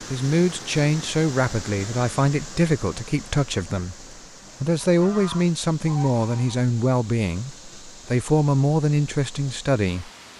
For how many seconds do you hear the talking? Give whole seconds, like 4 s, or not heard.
10 s.